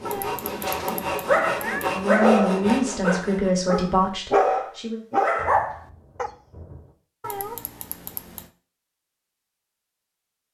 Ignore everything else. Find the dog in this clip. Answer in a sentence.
The dog can be heard from 0.5 to 6.3 s.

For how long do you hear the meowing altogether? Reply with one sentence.
The meowing can be heard for 3 seconds in total.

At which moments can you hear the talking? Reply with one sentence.
You can hear the talking from 1.9 to 5.0 s.